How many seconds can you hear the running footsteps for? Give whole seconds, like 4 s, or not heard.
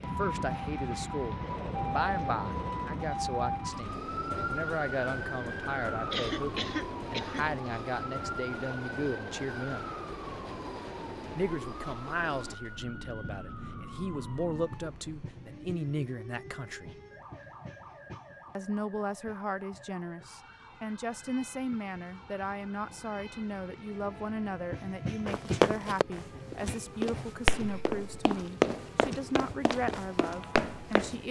6 s.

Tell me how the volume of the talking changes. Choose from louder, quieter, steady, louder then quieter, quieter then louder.
steady.